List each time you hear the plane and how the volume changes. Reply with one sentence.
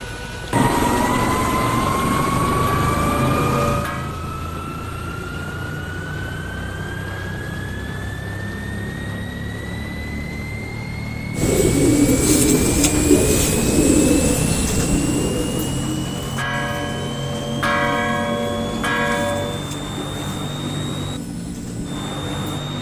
The plane can be heard from 0.0 to 22.7 s, getting quieter.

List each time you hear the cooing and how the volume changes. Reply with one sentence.
The cooing can be heard from 11.3 to 22.6 s, getting quieter.